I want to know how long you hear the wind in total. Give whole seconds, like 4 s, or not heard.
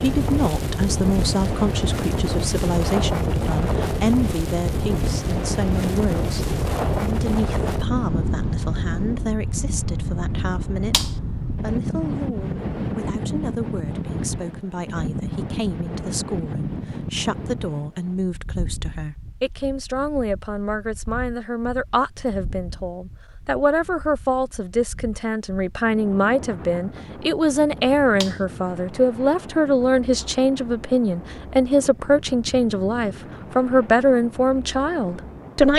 36 s.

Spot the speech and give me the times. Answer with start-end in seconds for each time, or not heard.
0.0-35.7.